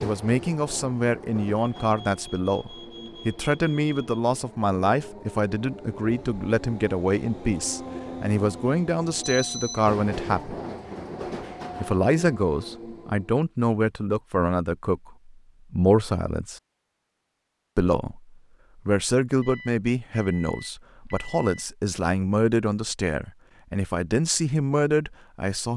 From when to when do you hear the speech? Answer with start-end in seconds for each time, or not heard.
0.0-10.6, 11.8-16.6, 17.8-25.7.